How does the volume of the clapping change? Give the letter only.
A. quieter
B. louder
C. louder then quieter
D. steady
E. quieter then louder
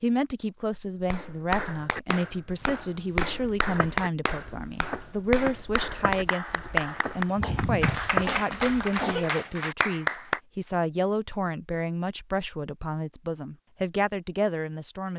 D.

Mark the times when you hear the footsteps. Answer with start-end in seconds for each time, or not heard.
2.5-9.3.